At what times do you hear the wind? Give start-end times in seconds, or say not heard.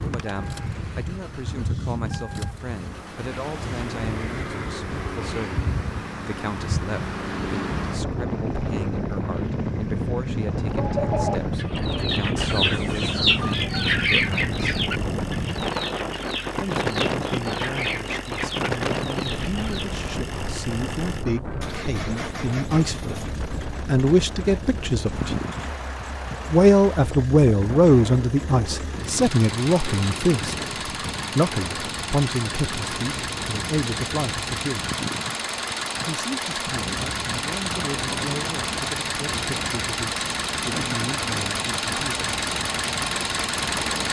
0.0-44.0.